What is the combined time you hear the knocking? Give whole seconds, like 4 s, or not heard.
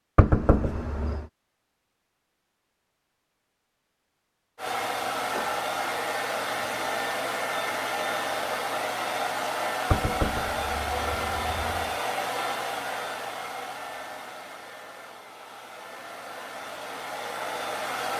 3 s.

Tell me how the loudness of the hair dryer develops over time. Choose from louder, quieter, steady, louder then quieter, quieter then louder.
quieter.